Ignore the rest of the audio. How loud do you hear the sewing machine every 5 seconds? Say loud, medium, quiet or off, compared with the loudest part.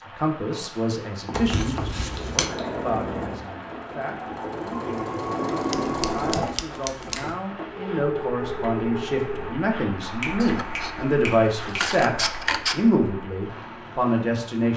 loud, loud, off.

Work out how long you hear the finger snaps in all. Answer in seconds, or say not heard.
3 s.